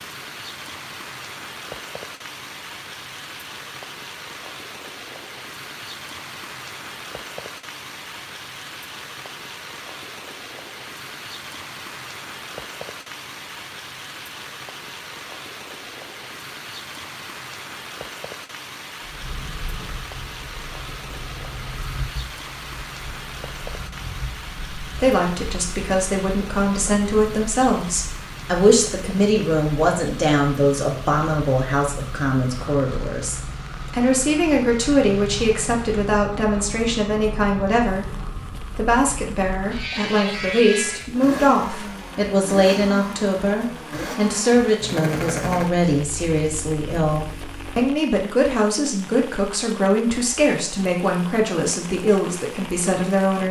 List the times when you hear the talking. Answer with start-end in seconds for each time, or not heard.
24.8-53.4.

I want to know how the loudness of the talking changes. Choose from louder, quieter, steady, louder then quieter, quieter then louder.
steady.